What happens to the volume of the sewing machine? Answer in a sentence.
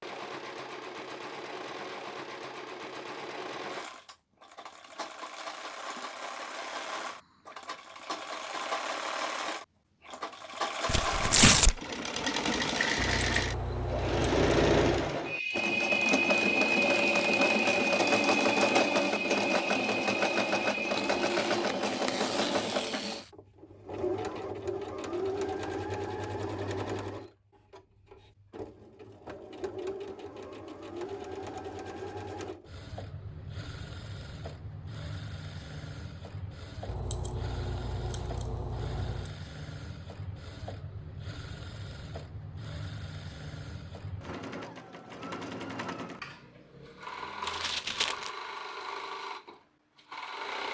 The volume of the sewing machine goes up, then down.